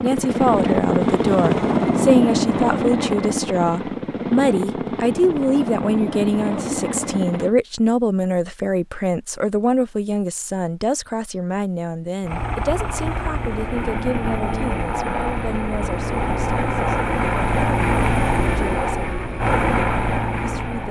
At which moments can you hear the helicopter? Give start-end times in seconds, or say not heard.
0.0-7.5, 12.2-20.8.